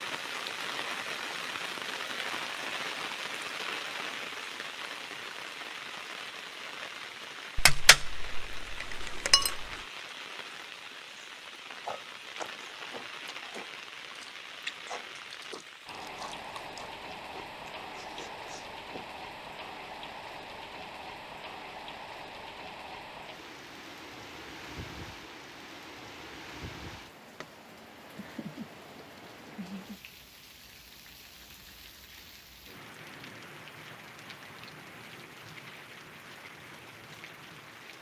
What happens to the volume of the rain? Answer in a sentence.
The loudness of the rain goes down.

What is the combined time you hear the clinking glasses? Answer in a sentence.
The clinking glasses can be heard for 2 seconds in total.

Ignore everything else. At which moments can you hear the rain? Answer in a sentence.
The rain can be heard from 0.0 to 37.9 s.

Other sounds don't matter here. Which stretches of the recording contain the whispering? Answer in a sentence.
You can't hear the whispering here.